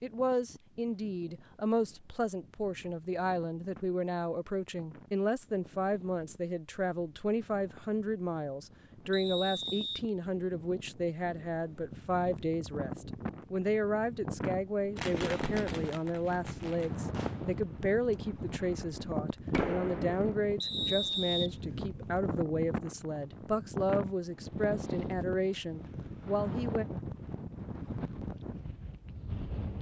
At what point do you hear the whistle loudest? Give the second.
21 s.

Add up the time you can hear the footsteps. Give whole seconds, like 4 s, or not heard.
not heard.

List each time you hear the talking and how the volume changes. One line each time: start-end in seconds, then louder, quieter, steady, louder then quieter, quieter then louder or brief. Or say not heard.
0.0-26.9 steady.